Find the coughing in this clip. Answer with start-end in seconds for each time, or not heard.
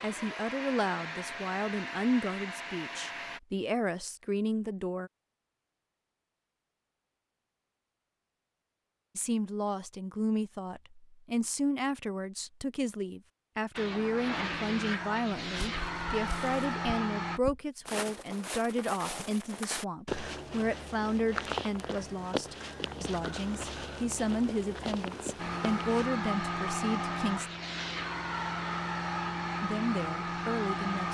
not heard.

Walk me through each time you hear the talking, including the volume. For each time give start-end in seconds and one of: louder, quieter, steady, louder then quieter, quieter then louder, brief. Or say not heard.
0.0-5.1 steady
9.2-27.5 steady
29.6-31.1 brief.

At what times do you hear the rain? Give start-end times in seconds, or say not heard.
not heard.